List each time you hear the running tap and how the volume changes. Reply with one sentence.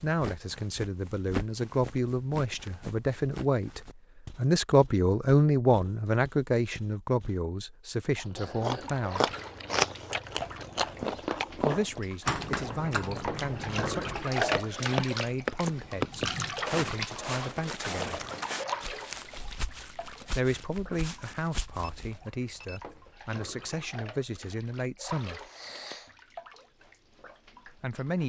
You can hear the running tap from 8.8 to 28.2 s, getting louder then quieter.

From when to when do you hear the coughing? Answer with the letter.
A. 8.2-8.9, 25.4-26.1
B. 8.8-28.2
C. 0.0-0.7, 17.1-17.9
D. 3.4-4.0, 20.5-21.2
A.